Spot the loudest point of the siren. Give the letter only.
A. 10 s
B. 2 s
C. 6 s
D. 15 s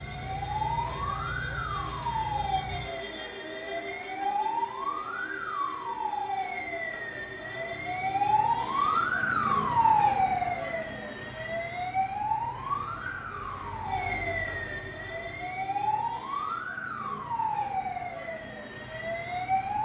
A.